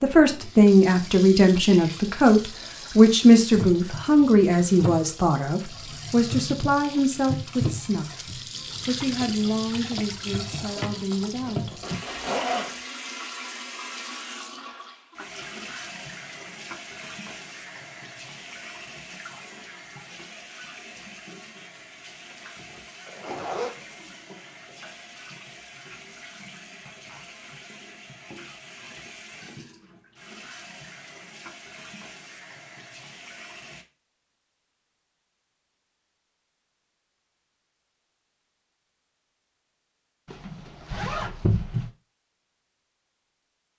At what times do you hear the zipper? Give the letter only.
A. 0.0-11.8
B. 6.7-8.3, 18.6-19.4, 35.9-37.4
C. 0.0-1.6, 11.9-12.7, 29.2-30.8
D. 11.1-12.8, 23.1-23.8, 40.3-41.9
D.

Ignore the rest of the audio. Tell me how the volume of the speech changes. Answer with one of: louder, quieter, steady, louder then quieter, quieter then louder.
quieter.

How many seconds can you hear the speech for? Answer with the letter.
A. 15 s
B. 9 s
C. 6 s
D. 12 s
D.